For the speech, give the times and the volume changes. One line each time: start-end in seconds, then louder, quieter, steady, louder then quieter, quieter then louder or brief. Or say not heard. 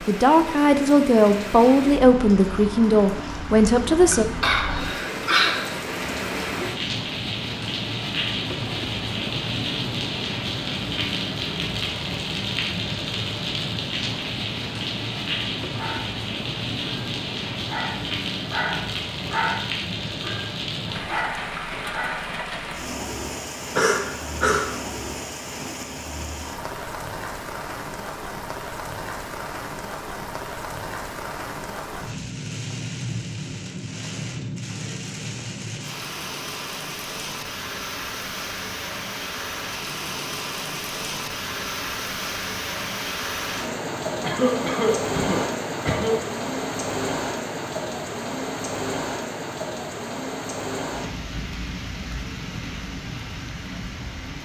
0.1-4.2 steady.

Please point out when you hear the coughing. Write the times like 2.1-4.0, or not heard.
4.1-5.8, 23.8-24.8, 44.2-46.1.